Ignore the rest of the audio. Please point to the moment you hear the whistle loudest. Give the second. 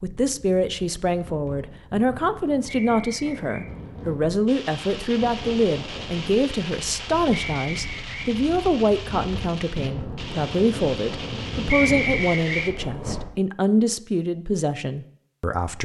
12 s.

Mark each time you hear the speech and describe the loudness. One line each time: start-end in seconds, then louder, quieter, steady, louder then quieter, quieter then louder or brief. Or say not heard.
0.0-15.7 steady.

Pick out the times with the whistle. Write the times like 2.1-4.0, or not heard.
2.6-3.7, 7.3-8.3, 11.7-12.7.